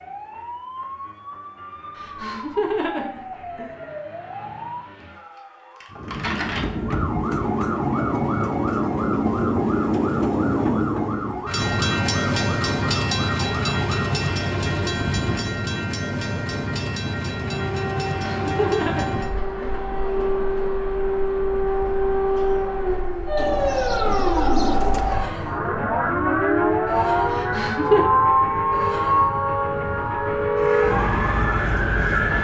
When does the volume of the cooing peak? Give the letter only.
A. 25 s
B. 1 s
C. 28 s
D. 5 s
A.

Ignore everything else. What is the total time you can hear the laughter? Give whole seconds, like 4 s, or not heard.
4 s.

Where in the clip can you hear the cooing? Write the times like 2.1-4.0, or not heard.
23.4-25.1.